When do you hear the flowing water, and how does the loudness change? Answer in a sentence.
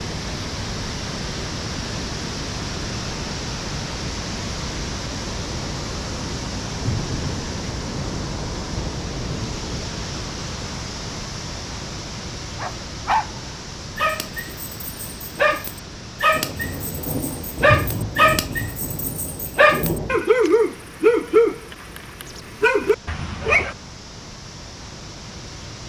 The flowing water can be heard from 0.0 to 25.8 s, getting quieter.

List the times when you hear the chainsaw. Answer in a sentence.
The chainsaw can't be heard in this clip.